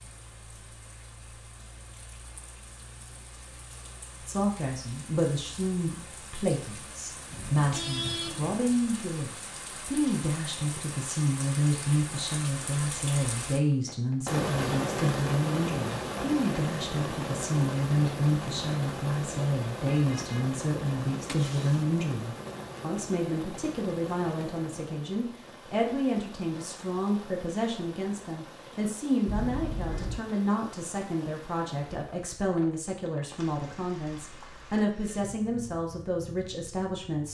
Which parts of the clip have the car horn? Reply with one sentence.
The car horn can be heard from 7.3 to 8.6 s, from 19.9 to 21.9 s and from 29.2 to 30.2 s.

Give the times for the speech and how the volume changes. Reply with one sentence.
You can hear the speech from 4.2 to 37.2 s, at a steady volume.